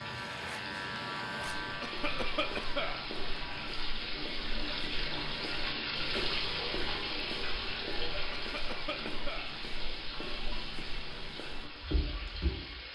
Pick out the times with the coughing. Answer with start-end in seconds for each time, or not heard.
1.8-3.0, 8.3-9.6.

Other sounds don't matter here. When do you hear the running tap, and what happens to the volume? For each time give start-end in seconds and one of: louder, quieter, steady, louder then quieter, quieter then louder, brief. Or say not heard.
0.0-12.9 louder then quieter.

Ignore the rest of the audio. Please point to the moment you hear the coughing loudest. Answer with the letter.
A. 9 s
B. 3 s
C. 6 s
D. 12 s
B.